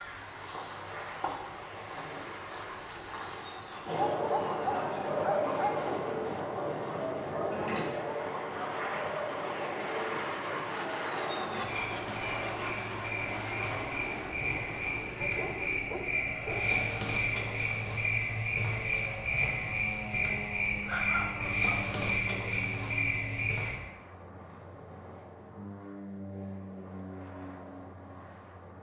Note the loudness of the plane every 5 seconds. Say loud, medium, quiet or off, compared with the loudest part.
medium, loud, loud, medium, medium, medium.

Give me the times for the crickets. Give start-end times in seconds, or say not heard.
0.0-23.8.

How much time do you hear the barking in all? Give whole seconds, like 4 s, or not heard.
5 s.